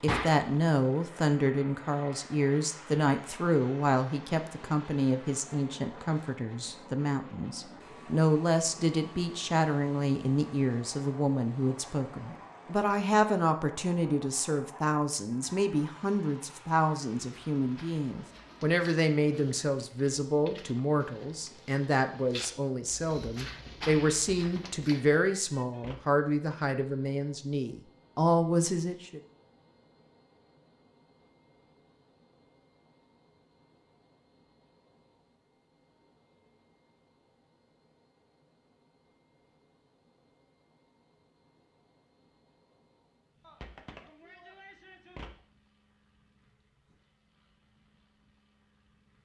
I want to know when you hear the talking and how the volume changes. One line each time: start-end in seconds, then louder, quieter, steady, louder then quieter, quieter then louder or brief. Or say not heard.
0.0-29.2 steady.